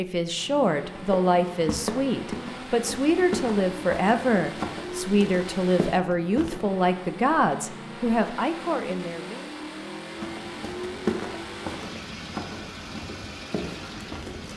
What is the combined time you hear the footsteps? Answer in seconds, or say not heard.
10 s.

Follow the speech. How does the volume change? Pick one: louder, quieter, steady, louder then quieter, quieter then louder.
steady.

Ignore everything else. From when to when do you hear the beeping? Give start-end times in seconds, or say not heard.
not heard.